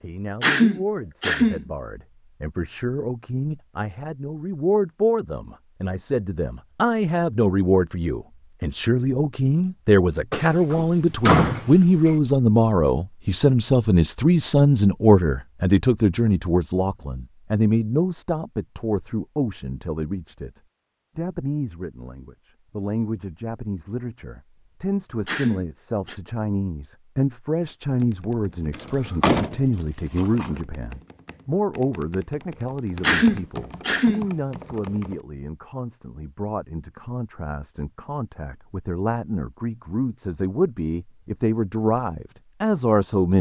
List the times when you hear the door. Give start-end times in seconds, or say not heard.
10.3-12.2, 28.7-30.5.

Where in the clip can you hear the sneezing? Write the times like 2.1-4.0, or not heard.
0.4-1.6, 25.2-26.1, 33.0-34.2.